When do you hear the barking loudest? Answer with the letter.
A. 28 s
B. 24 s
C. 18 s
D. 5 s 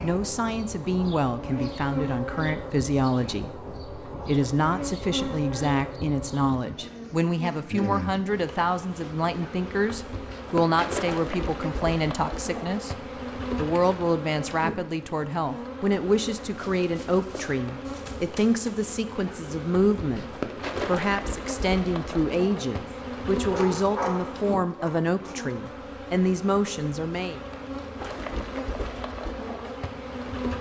B.